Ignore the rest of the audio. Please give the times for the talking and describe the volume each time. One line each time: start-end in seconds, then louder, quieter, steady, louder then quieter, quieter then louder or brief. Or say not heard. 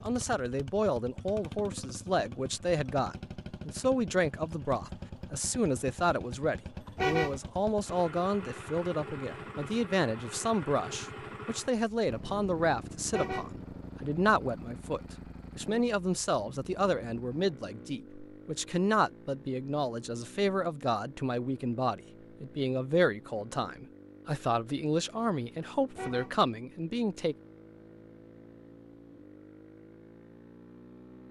0.0-27.4 steady.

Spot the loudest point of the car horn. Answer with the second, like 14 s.
7 s.